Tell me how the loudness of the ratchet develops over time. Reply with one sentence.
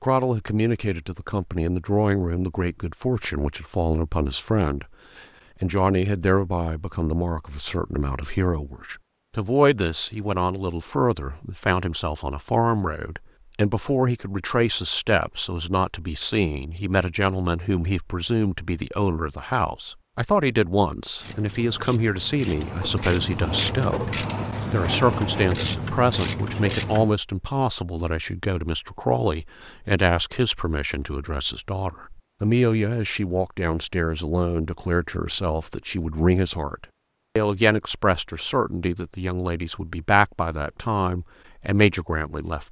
The loudness of the ratchet goes up.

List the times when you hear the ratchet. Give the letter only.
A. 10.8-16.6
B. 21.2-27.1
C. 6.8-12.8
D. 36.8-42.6
B.